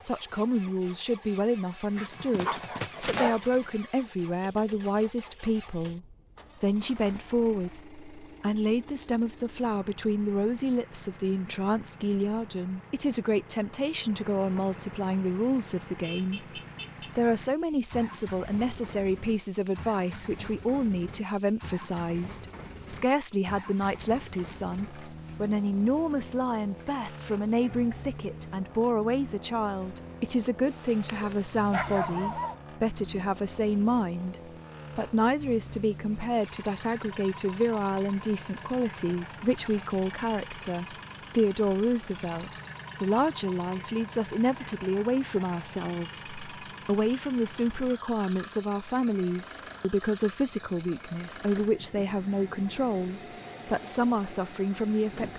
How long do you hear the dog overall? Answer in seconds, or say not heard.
4 s.